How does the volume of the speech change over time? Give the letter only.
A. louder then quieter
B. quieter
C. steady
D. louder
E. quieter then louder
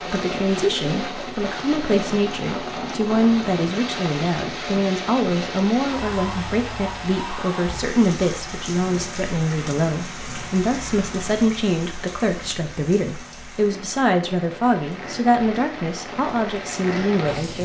C.